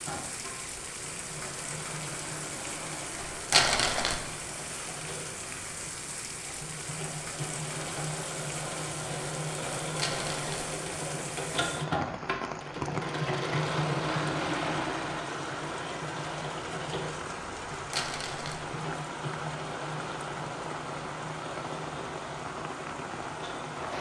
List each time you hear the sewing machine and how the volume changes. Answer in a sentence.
You can hear the sewing machine from 0.0 to 23.9 s, getting louder then quieter.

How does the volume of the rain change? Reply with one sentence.
The loudness of the rain stays about the same.